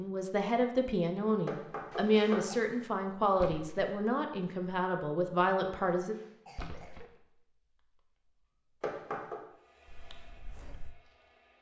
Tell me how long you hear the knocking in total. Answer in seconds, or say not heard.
2 s.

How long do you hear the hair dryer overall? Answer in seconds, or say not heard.
2 s.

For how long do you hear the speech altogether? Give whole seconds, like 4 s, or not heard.
6 s.